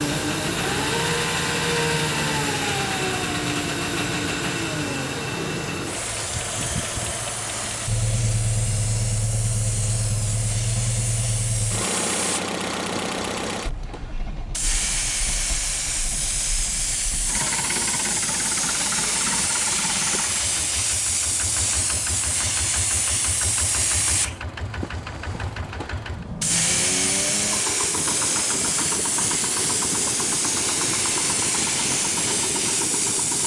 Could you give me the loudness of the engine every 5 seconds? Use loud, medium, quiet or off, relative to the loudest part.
loud, loud, loud, medium, medium, medium, medium.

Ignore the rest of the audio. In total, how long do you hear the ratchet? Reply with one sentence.
You can't hear the ratchet here.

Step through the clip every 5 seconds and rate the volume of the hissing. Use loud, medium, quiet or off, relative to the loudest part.
medium, medium, medium, loud, loud, loud, loud.